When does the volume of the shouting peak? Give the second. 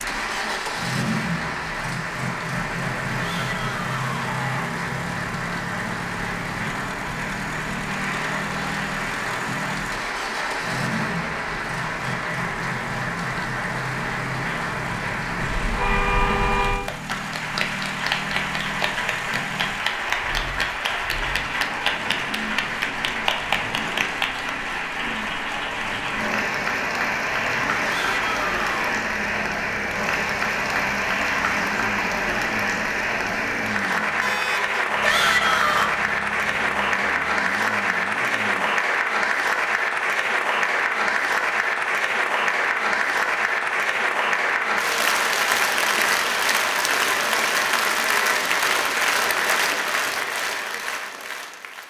35 s.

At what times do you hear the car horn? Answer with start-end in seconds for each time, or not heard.
15.4-16.9, 34.2-34.8.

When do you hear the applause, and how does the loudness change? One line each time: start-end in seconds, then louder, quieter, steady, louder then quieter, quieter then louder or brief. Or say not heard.
0.0-51.8 louder.